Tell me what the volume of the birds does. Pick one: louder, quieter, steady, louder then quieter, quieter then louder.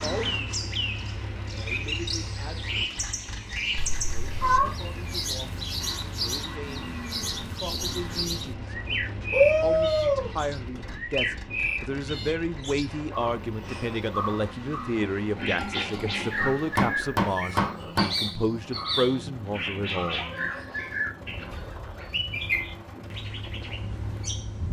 steady.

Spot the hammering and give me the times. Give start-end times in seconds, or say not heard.
15.3-18.1.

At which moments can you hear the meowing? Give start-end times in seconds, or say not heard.
3.8-4.8, 9.3-10.3, 20.1-20.9.